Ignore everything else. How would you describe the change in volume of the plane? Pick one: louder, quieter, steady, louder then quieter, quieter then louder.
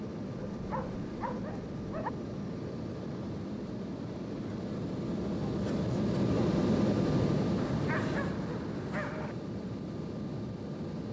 louder then quieter.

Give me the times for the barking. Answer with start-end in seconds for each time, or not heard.
0.5-2.1, 7.5-9.3.